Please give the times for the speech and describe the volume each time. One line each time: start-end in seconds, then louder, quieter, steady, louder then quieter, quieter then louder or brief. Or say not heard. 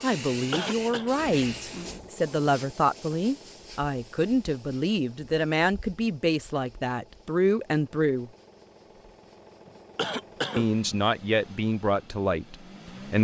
0.0-8.3 steady
10.6-13.1 brief.